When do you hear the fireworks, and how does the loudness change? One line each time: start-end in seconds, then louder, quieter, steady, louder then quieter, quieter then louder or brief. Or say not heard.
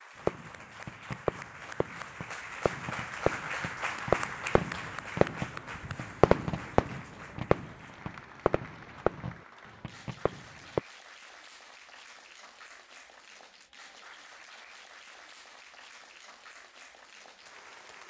0.2-10.8 louder then quieter.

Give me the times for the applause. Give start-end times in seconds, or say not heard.
0.0-18.0.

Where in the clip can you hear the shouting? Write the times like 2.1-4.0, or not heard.
not heard.